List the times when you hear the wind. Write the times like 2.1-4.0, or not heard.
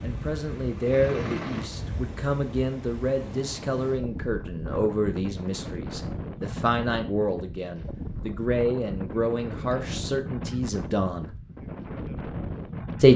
0.0-13.1.